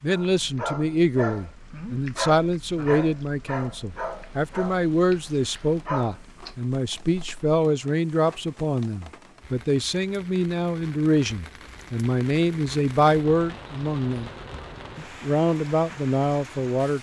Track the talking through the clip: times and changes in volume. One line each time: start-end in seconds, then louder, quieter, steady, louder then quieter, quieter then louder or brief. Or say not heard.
0.0-14.3 steady
14.9-16.9 brief.